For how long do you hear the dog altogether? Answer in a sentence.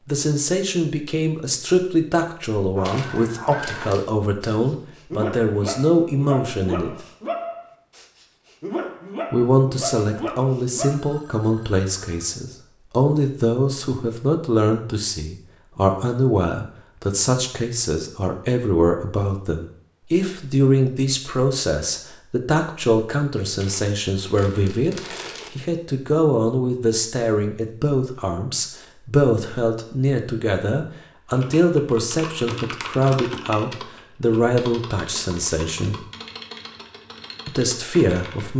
You can hear the dog for 8 seconds altogether.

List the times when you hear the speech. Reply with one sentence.
You can hear the speech from 0.1 to 7.0 s, from 9.3 to 36.0 s and from 37.5 to 38.5 s.